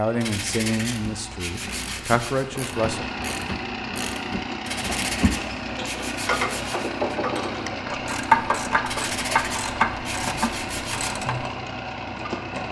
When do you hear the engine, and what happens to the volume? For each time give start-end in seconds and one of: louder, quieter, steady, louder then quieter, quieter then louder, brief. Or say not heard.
0.0-12.6 louder.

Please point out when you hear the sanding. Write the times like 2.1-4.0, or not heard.
0.2-2.5, 4.7-6.9, 8.8-11.1.